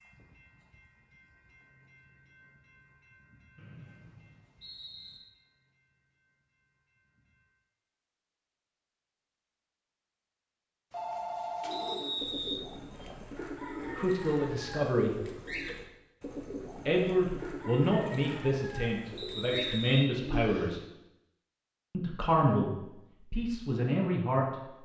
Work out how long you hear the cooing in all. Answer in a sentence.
You can hear the cooing for 9 seconds altogether.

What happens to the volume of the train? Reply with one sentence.
The loudness of the train goes down.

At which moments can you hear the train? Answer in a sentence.
You can hear the train from 0.0 to 7.7 s.